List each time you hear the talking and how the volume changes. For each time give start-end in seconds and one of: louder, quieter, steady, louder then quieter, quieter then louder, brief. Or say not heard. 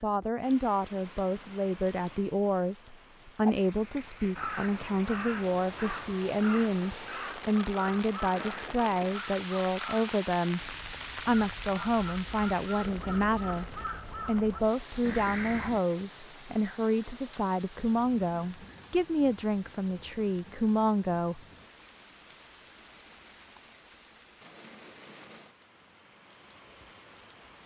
0.0-21.4 steady.